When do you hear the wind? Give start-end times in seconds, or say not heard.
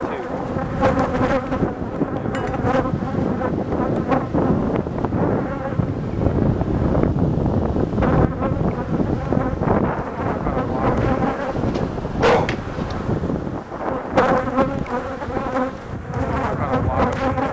0.0-17.4.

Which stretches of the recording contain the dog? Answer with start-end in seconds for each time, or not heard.
11.6-12.9.